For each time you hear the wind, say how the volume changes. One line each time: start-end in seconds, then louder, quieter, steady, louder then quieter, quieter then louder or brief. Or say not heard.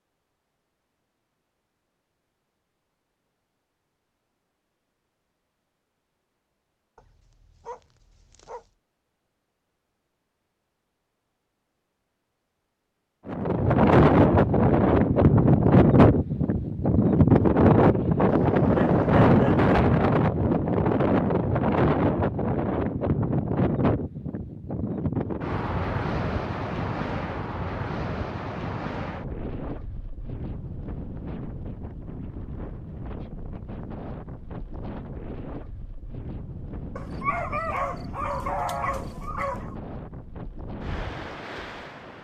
13.2-42.1 quieter.